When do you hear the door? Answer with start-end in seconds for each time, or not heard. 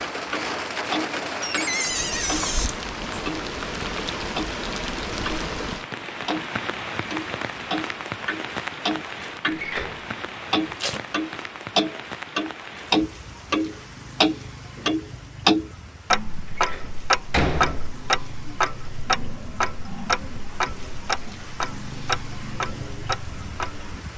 1.4-2.8, 9.5-10.1, 16.6-17.9.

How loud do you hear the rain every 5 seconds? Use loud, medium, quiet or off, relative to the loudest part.
loud, loud, medium, quiet, medium.